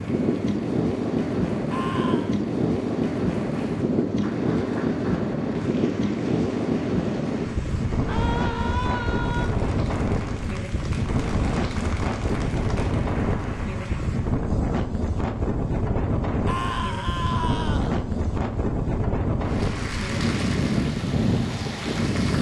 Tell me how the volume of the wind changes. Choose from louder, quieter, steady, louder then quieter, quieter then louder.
steady.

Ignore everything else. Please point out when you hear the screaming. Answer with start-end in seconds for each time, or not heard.
1.7-2.4, 8.1-9.5, 16.4-17.9.